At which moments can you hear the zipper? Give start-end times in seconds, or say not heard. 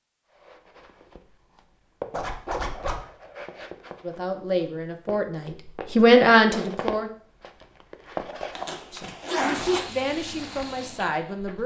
2.1-3.0, 8.6-9.8.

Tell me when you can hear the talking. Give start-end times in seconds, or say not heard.
4.0-7.1, 8.9-11.6.